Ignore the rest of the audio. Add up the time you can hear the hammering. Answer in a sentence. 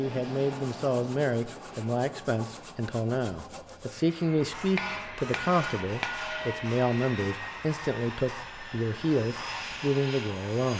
The hammering can be heard for 2 seconds in total.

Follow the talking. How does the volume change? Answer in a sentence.
The loudness of the talking stays about the same.